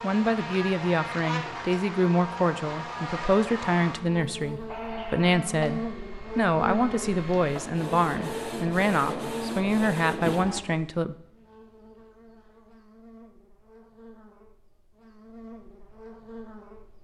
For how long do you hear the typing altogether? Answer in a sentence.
The typing can't be heard in this clip.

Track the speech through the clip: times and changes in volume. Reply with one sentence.
You can hear the speech from 0.0 to 11.2 s, at a steady volume.